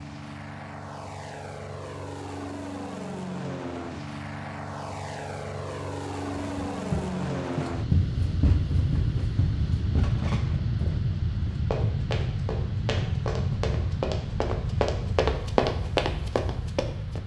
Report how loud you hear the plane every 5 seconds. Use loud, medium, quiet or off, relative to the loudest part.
medium, loud, loud, medium.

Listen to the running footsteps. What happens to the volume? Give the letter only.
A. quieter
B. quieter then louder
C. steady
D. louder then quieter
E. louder
B.